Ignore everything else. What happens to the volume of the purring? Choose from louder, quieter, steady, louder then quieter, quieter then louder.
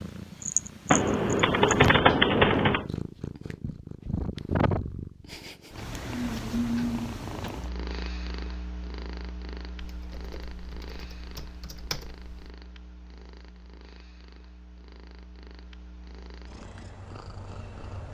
quieter.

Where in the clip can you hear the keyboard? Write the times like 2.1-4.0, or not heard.
0.9-2.9, 9.8-12.5.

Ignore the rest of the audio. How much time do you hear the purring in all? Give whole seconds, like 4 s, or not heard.
18 s.